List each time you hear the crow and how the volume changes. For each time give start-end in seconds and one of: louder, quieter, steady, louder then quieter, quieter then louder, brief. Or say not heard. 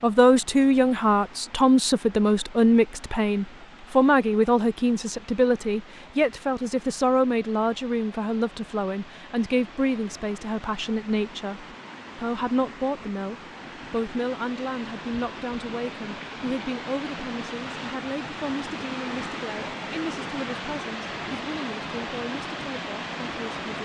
not heard.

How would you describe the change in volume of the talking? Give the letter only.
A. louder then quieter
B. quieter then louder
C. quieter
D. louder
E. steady
C.